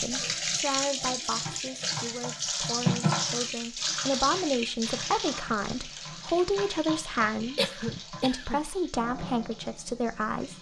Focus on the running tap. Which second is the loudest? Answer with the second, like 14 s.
3 s.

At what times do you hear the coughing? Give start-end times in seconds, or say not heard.
7.5-8.6.